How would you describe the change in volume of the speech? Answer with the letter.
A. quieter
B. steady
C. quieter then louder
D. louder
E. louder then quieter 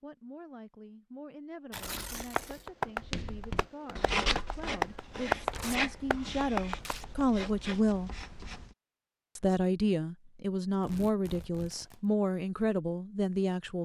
D.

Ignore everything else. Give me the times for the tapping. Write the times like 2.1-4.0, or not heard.
2.2-7.2.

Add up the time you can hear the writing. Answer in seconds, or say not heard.
6 s.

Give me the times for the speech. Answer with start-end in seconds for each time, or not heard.
0.0-8.1, 9.3-13.8.